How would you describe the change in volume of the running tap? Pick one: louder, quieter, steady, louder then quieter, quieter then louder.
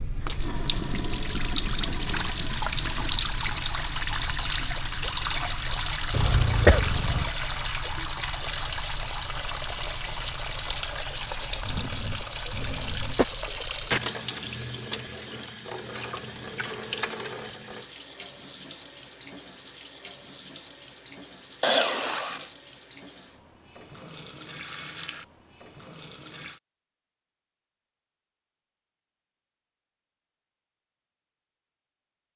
quieter.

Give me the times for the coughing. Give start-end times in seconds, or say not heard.
6.1-7.3, 11.7-13.2, 21.6-22.5.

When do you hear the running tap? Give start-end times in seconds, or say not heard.
0.0-26.6.